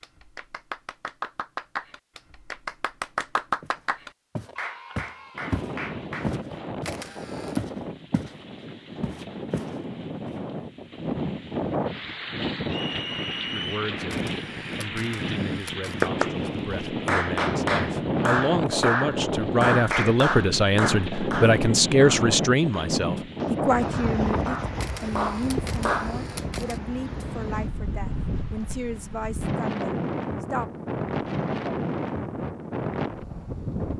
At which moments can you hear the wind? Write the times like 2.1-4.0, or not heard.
5.3-33.9.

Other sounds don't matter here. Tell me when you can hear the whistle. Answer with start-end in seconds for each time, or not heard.
12.7-13.8.